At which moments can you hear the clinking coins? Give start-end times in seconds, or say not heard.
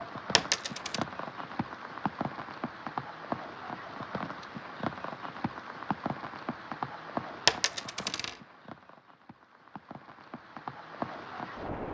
0.3-1.1, 7.5-8.3.